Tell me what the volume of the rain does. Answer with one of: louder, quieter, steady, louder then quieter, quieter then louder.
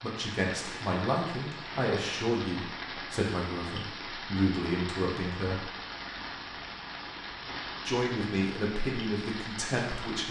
steady.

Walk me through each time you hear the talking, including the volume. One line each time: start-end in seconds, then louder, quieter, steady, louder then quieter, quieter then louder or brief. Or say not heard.
0.0-5.7 quieter then louder
7.8-10.2 brief.